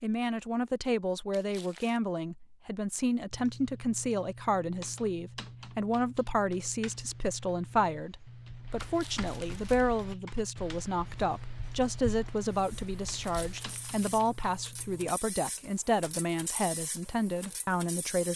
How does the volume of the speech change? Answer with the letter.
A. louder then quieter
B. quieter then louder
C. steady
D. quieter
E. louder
C.